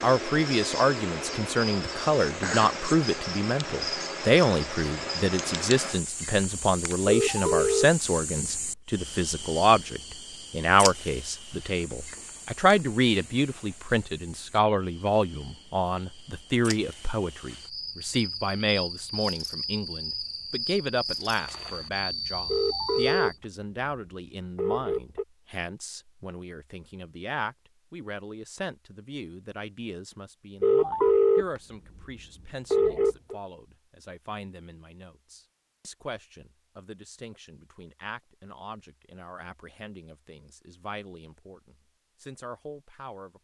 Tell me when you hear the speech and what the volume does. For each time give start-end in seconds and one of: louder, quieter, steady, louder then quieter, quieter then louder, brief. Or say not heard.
0.0-43.4 quieter.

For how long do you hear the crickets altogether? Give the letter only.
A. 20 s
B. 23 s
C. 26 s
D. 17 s
B.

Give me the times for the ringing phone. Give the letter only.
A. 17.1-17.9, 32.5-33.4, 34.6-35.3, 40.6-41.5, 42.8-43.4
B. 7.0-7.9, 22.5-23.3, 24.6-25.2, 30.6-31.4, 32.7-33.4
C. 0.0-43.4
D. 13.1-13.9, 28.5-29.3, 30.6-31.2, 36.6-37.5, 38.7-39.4
B.